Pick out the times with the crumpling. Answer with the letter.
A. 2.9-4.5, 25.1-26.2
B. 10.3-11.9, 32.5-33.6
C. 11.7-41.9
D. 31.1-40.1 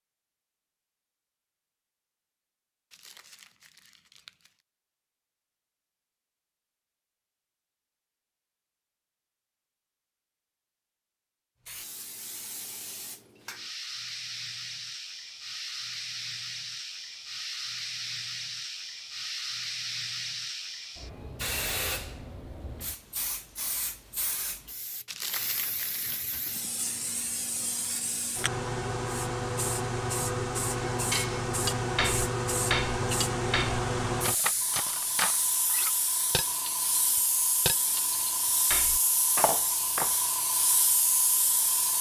A.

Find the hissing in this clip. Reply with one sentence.
You can hear the hissing from 11.7 to 41.9 s.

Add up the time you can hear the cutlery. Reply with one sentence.
You can hear the cutlery for 9 seconds altogether.